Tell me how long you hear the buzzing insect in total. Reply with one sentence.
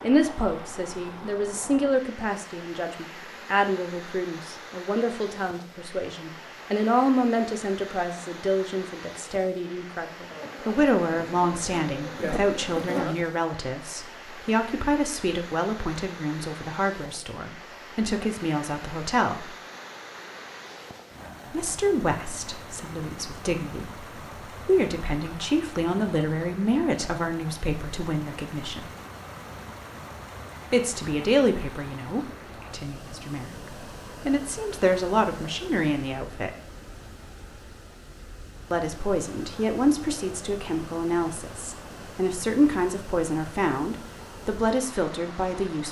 The buzzing insect can be heard for 3 seconds in total.